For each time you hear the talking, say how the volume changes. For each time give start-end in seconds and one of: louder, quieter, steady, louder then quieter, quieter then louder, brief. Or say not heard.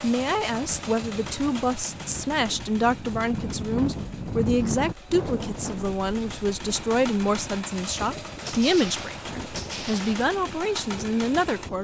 0.0-11.8 steady.